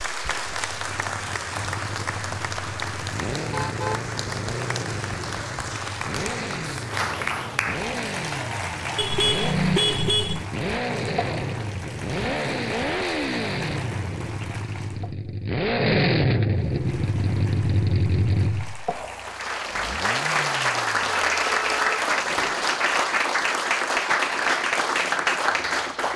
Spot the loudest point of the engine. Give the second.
16 s.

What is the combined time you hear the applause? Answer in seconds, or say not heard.
25 s.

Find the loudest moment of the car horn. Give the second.
10 s.